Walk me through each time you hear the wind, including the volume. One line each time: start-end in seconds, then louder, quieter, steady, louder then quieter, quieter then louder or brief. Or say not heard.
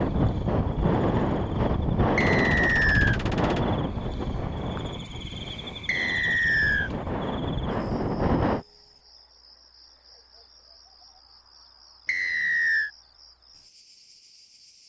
0.0-8.7 quieter then louder.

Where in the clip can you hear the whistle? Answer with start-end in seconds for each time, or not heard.
2.1-3.2, 5.8-6.9, 12.1-12.9.